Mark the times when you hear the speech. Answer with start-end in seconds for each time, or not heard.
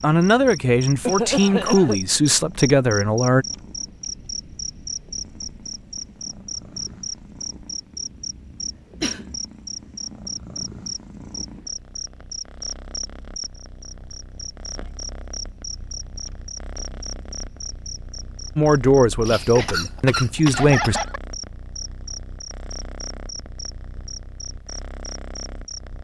0.0-3.5, 18.6-21.0.